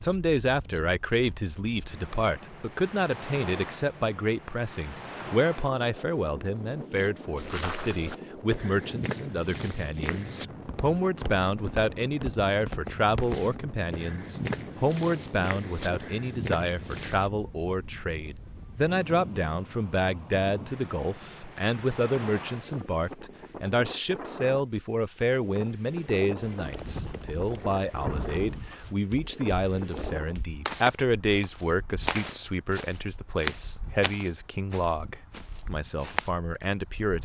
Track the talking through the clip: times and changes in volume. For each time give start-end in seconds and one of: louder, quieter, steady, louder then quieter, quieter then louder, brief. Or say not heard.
0.0-37.2 steady.